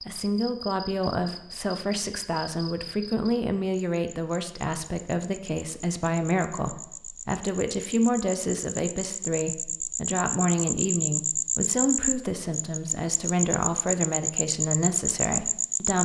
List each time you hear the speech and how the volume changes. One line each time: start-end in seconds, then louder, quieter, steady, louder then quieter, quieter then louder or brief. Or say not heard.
0.1-16.0 steady.